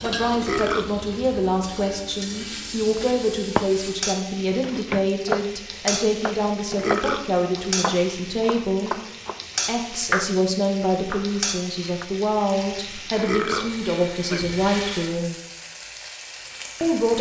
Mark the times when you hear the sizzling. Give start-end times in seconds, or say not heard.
0.0-17.1.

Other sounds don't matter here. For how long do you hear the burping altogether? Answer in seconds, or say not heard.
2 s.